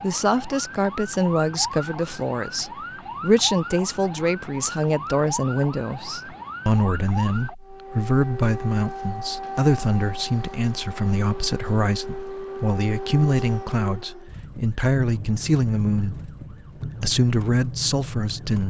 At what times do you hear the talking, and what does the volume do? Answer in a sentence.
You can hear the talking from 0.0 to 18.6 s, at a steady volume.